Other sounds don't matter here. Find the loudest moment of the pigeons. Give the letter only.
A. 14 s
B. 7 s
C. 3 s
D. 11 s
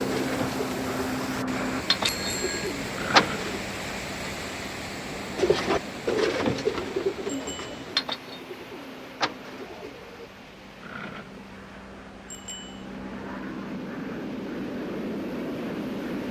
C.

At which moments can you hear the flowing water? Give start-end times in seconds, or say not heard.
0.0-16.2.